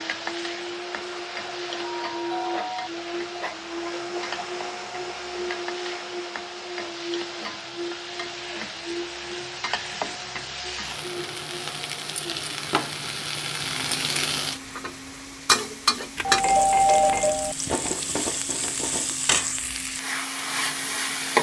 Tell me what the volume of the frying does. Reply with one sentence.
The volume of the frying goes up.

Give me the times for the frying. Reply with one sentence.
You can hear the frying from 0.0 to 21.3 s.